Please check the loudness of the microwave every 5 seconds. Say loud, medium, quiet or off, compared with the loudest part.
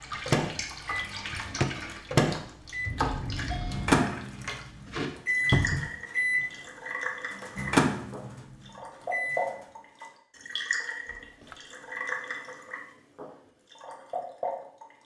loud, loud, off.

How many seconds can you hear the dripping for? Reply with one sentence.
You can hear the dripping for 15 seconds altogether.